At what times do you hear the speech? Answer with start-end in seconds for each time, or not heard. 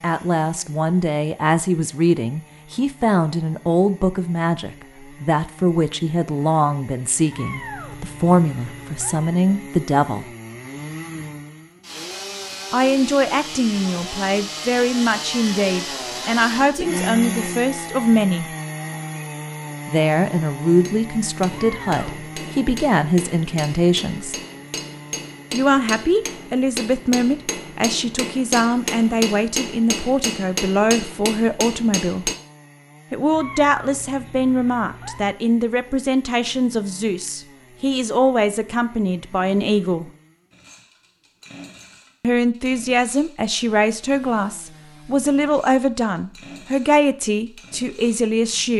0.0-10.2, 12.7-18.4, 19.9-24.4, 25.5-32.3, 33.1-40.1, 42.2-48.7.